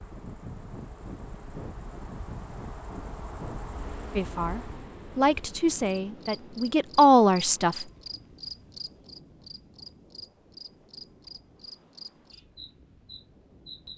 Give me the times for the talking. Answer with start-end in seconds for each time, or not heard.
4.2-7.8.